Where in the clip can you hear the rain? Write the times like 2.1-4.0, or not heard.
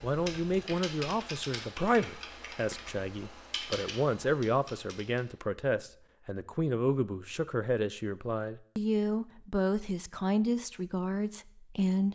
not heard.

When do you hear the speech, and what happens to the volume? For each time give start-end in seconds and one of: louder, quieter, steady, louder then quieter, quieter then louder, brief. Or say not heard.
0.0-12.1 steady.